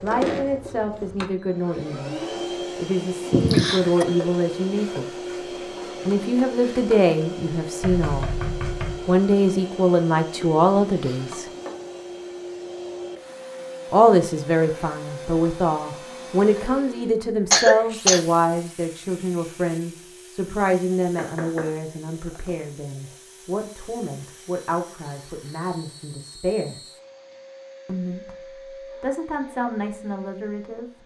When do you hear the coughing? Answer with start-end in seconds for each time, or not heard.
3.3-4.0, 17.5-18.2.